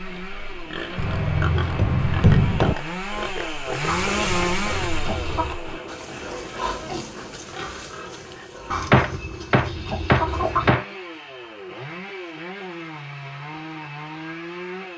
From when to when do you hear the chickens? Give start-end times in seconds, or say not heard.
3.9-5.6, 8.7-10.7.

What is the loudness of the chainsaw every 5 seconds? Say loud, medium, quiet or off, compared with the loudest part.
loud, medium, medium.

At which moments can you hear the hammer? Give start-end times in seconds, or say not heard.
0.9-2.8, 8.9-10.8.